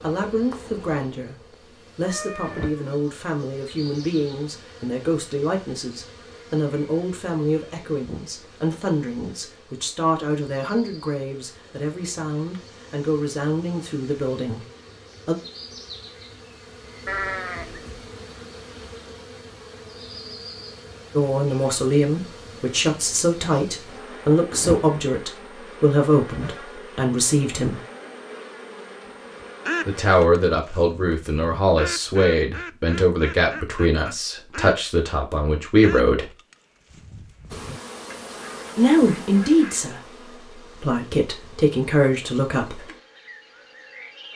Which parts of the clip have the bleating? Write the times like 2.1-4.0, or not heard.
17.1-18.1.